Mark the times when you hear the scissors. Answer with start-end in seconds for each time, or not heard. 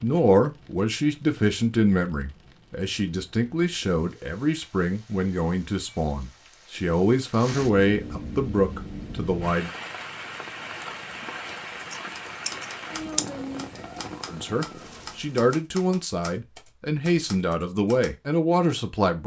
11.8-13.2.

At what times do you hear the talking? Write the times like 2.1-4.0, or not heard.
0.0-9.7, 14.3-19.2.